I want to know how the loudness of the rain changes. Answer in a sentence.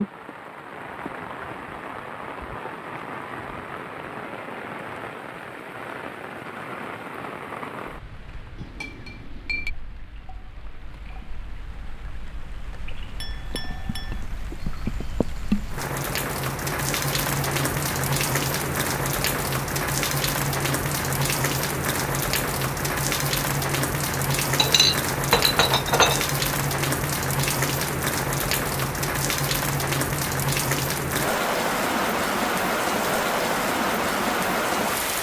The volume of the rain goes down, then up.